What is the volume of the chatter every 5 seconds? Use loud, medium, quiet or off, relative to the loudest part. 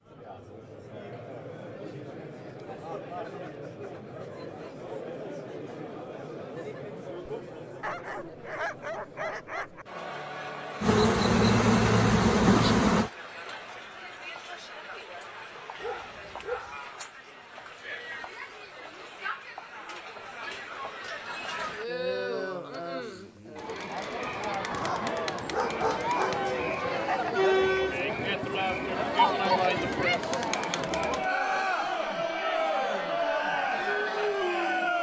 quiet, quiet, quiet, quiet, medium, loud, loud.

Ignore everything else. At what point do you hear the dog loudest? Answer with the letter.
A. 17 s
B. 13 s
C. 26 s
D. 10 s
C.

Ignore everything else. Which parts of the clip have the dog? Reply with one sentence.
The dog can be heard from 7.8 to 9.8 s, from 15.8 to 16.8 s and from 24.7 to 26.4 s.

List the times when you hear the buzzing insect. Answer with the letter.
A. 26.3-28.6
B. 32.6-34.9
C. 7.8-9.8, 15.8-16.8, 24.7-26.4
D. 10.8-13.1
D.